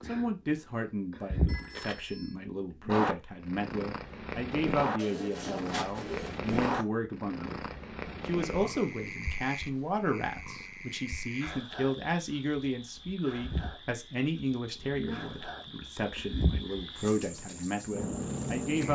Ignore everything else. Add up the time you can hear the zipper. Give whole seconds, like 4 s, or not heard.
2 s.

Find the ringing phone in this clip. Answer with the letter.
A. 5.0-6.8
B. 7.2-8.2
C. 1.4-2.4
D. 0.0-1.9
C.